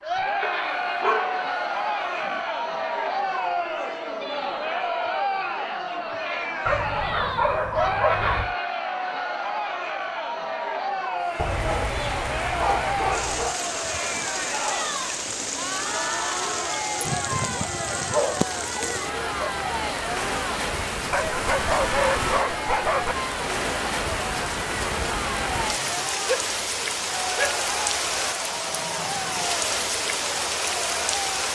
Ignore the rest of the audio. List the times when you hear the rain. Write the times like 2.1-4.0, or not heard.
11.2-31.4.